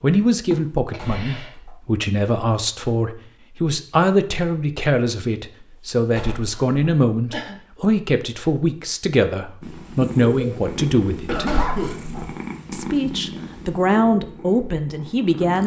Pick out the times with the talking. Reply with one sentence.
You can hear the talking from 0.0 to 11.5 s and from 12.7 to 15.6 s.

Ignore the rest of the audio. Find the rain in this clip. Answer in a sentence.
You can't hear the rain here.